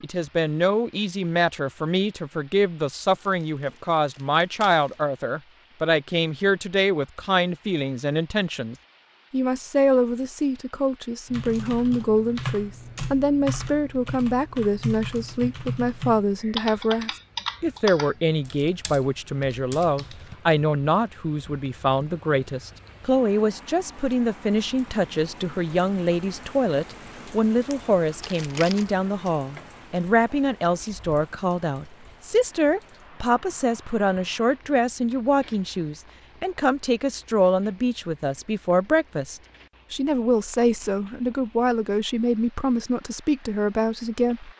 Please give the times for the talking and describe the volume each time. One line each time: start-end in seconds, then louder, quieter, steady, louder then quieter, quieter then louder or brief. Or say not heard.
0.0-44.5 steady.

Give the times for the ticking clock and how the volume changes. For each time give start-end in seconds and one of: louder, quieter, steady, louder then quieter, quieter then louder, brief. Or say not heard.
not heard.